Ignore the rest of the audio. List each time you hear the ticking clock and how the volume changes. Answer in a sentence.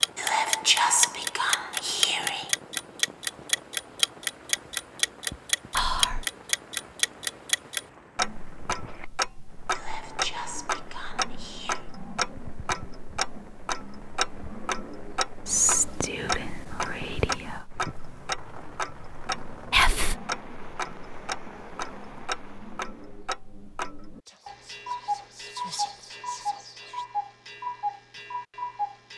The ticking clock can be heard from 0.0 to 29.1 s, getting quieter.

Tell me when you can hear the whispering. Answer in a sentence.
You can hear the whispering from 0.1 to 2.5 s, from 5.7 to 6.2 s, from 9.7 to 11.8 s, from 15.4 to 17.6 s, from 19.7 to 20.2 s and from 24.2 to 27.1 s.